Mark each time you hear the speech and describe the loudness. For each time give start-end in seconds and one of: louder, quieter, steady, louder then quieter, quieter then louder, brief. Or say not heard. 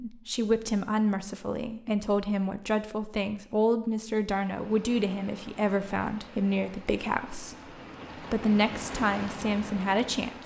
0.0-10.4 steady.